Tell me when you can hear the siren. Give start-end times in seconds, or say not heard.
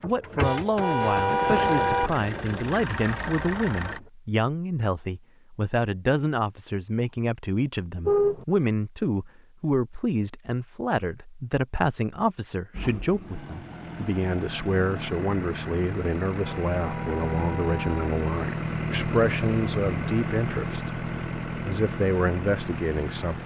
not heard.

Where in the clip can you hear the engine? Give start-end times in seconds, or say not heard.
0.0-4.1, 12.7-23.4.